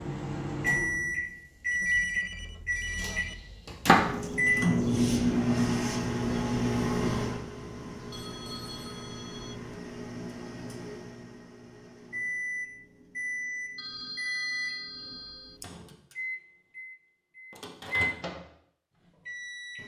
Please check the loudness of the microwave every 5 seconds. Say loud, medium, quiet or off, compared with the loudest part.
loud, loud, medium, medium.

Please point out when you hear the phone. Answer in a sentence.
The phone can be heard from 1.7 to 3.4 s, from 8.1 to 9.6 s and from 13.8 to 15.6 s.